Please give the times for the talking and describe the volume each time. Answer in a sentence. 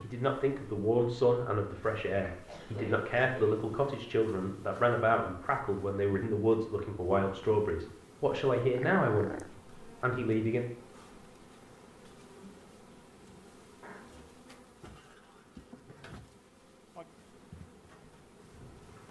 The talking can be heard from 0.0 to 10.7 s, at a steady volume.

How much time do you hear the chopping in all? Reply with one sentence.
The chopping can't be heard in this clip.